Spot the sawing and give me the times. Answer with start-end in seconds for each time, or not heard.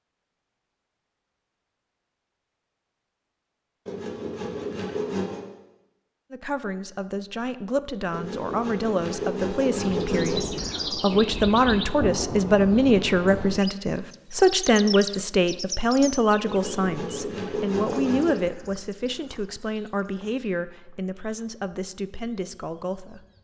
3.9-5.5, 8.1-10.4, 16.4-18.4.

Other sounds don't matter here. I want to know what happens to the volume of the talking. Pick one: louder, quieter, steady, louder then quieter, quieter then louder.
louder then quieter.